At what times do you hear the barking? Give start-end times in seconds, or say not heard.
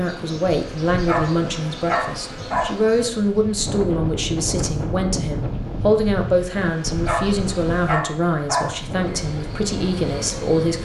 1.1-2.8, 7.0-8.8.